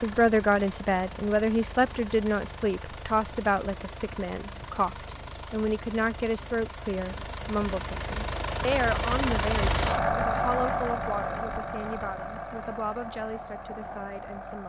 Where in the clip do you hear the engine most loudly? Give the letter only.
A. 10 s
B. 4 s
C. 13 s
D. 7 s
A.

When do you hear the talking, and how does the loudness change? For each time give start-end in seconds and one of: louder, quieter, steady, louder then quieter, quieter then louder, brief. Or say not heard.
0.0-14.6 quieter.